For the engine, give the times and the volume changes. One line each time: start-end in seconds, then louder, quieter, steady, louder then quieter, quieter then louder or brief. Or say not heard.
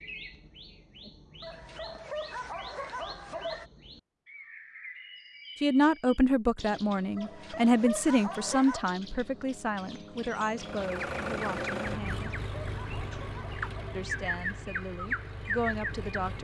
10.6-16.3 quieter.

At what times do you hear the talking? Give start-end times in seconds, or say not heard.
5.6-12.3, 13.9-16.3.